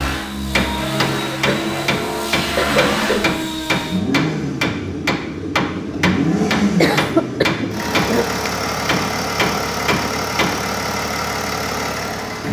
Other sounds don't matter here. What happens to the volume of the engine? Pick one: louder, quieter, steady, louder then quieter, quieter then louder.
steady.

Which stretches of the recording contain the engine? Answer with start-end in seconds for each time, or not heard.
0.0-12.4.